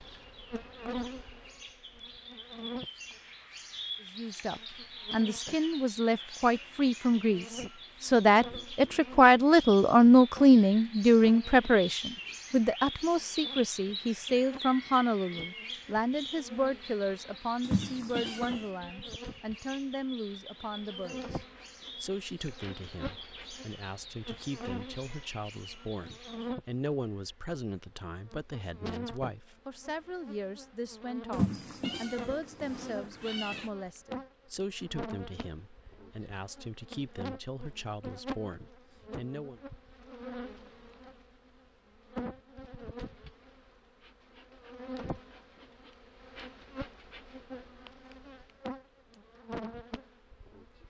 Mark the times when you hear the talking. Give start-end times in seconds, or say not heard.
4.2-39.6.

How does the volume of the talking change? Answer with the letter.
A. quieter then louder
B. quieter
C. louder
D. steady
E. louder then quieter
B.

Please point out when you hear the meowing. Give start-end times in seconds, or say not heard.
17.6-18.7, 31.3-33.7.